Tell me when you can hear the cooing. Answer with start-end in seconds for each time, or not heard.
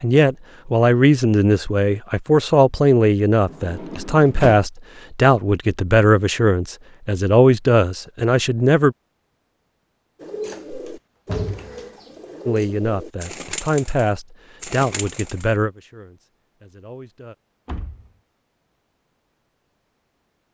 10.2-15.6.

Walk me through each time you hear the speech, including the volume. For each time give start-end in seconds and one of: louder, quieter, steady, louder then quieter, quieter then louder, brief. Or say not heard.
0.0-8.9 steady
12.4-17.4 louder then quieter.